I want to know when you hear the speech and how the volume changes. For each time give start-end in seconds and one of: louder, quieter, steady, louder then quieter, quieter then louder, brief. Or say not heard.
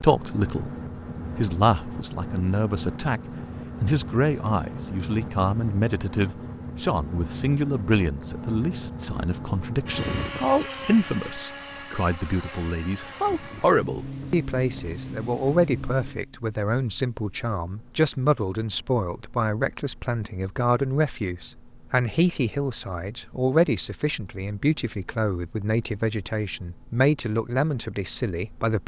0.0-0.7 brief
1.4-3.2 brief
3.8-28.8 steady.